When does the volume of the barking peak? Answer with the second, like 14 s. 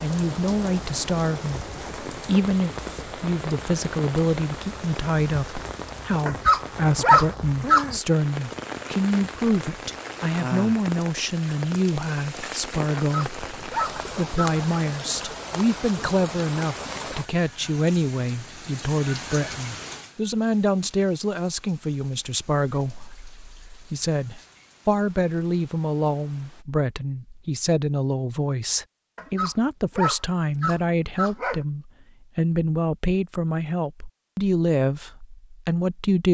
7 s.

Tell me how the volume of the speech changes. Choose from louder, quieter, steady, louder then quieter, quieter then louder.
steady.